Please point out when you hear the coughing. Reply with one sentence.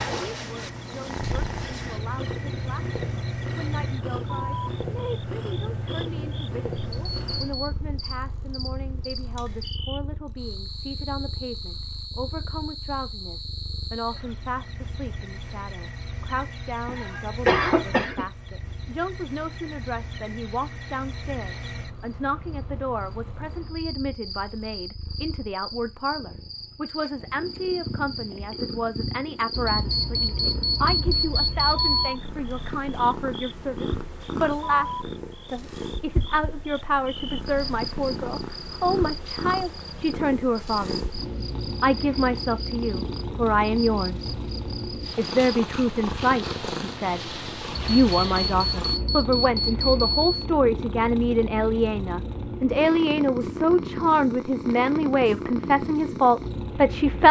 You can hear the coughing from 16.9 to 18.2 s.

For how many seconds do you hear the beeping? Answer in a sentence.
The beeping can be heard for 6 seconds in total.